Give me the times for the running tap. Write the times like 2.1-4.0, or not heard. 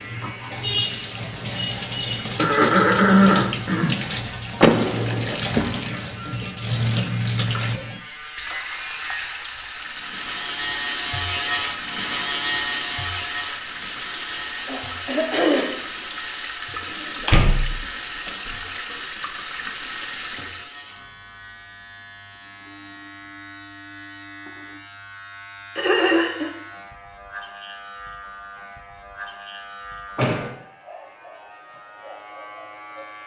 0.0-20.8.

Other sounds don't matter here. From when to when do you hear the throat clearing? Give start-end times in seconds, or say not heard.
2.4-4.0, 14.7-15.8, 25.8-26.5.